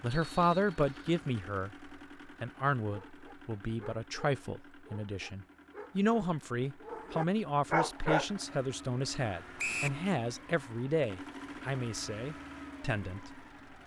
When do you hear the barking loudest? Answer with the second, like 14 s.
8 s.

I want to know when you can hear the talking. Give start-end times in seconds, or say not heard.
0.0-13.4.